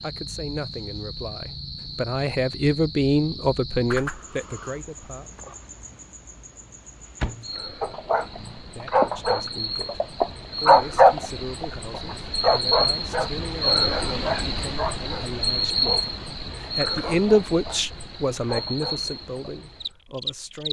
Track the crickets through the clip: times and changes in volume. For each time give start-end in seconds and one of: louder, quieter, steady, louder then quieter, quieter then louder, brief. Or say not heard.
0.0-20.6 louder then quieter.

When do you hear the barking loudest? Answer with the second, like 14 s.
11 s.